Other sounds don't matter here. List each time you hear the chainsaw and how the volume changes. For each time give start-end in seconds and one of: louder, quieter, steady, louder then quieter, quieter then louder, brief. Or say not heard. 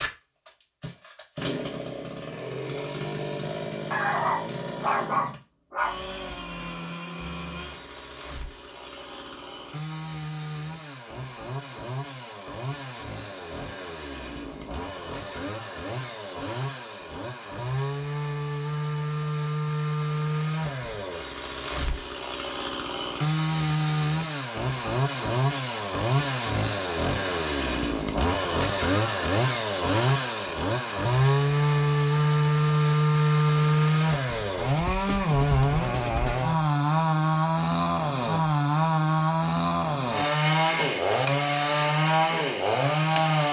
0.0-43.4 louder.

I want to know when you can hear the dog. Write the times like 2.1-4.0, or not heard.
3.9-5.9.